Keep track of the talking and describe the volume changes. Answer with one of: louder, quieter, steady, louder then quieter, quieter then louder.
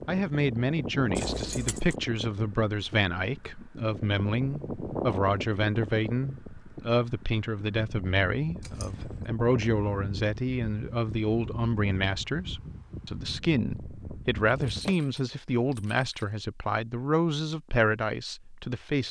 steady.